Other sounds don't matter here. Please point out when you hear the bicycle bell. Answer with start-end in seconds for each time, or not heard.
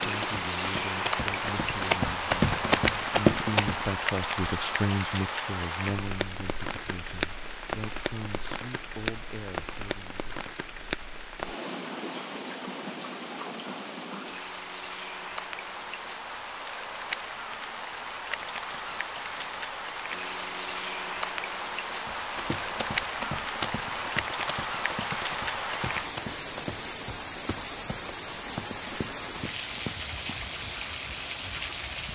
18.3-19.7.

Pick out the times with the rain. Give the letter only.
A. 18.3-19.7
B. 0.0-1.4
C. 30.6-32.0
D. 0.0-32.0
D.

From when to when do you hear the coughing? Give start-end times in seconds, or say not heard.
not heard.